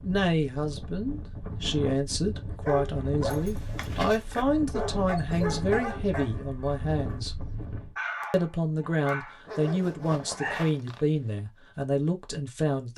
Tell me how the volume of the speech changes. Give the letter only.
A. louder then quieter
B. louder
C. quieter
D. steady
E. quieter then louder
D.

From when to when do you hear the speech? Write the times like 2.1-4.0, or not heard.
0.0-7.3, 8.3-12.9.